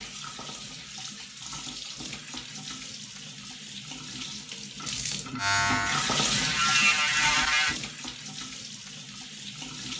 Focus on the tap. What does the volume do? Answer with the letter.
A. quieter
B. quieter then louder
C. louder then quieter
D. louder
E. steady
C.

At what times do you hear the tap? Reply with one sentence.
You can hear the tap from 0.0 to 9.9 s.